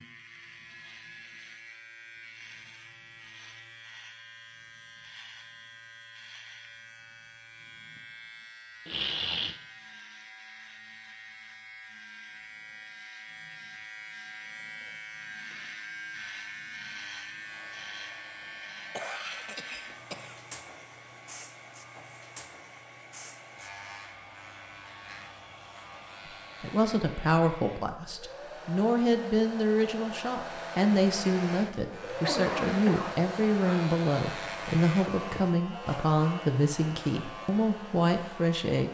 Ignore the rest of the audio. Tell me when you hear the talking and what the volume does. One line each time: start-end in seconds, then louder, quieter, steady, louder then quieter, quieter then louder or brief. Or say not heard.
26.6-38.8 steady.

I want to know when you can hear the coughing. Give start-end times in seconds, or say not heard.
8.8-9.6, 18.9-20.4, 32.0-33.9.